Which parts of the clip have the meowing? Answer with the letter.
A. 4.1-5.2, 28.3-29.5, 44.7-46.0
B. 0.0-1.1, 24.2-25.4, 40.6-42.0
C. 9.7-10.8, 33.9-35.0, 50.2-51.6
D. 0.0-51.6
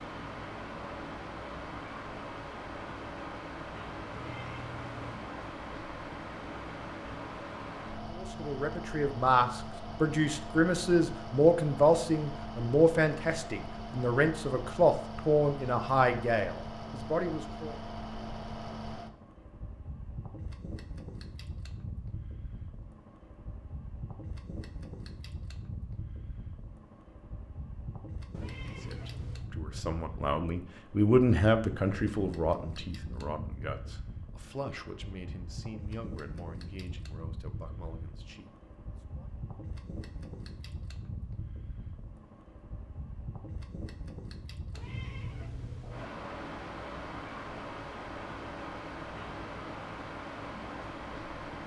A.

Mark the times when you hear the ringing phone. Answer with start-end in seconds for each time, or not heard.
not heard.